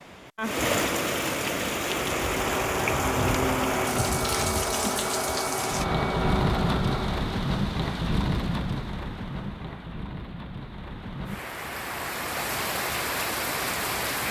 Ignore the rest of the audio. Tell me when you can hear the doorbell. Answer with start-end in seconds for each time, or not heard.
not heard.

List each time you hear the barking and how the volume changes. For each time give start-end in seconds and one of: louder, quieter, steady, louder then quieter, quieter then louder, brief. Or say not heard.
not heard.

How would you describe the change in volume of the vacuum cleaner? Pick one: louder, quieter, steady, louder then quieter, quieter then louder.
steady.